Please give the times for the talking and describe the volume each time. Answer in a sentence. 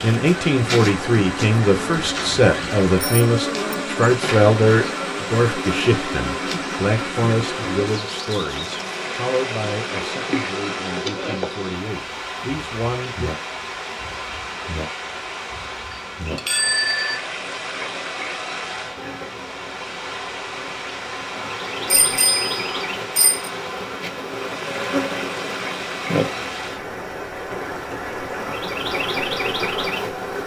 You can hear the talking from 0.0 to 13.3 s, getting quieter.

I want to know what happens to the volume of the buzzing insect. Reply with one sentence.
The loudness of the buzzing insect goes down, then up.